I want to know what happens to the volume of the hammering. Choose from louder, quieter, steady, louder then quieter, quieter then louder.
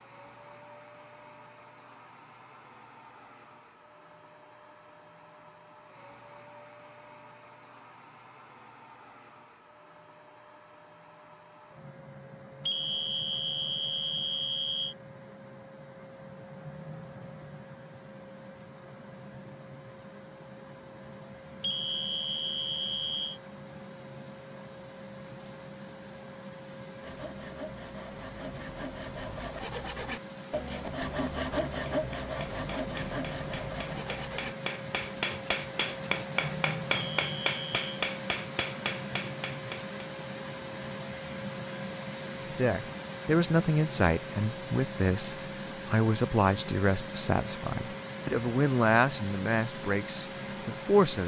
louder.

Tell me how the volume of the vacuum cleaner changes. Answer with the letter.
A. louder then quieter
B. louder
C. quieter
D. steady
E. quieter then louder
B.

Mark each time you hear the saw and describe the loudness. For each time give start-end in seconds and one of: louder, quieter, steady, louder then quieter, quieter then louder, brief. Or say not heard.
27.0-36.8 louder then quieter.